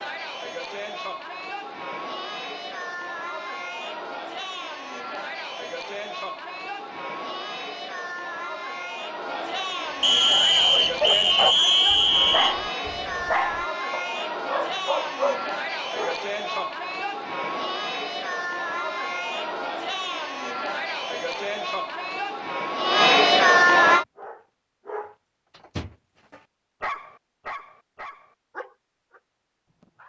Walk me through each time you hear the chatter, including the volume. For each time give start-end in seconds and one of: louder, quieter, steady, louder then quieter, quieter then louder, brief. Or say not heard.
0.0-24.1 louder.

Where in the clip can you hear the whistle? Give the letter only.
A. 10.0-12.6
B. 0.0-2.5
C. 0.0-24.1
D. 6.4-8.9
A.